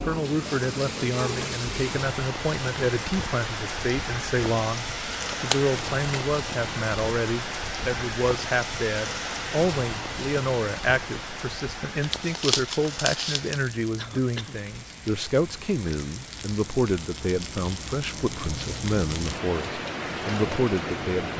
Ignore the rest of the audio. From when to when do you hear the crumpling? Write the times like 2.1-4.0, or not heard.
5.1-6.3, 12.0-13.6.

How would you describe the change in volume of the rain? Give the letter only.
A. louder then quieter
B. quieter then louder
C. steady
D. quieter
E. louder
B.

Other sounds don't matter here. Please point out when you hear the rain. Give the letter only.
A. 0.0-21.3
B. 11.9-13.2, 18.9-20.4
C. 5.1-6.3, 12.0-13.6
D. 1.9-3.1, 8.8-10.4
A.